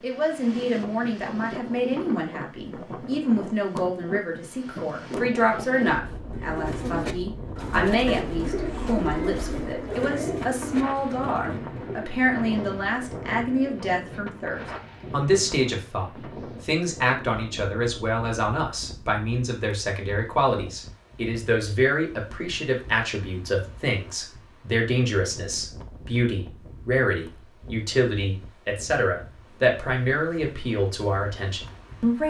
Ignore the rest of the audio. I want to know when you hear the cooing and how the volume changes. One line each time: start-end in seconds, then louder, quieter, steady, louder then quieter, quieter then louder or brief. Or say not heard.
6.3-15.2 quieter.